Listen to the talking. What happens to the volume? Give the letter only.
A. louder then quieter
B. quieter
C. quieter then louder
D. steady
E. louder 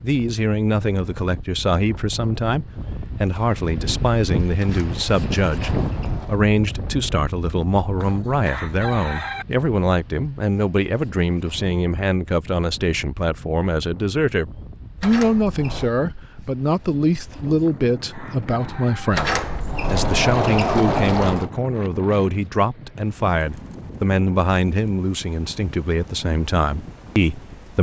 D.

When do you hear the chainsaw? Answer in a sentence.
You can't hear the chainsaw here.